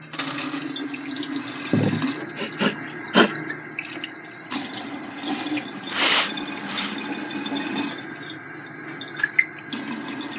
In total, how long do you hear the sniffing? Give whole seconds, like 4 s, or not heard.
3 s.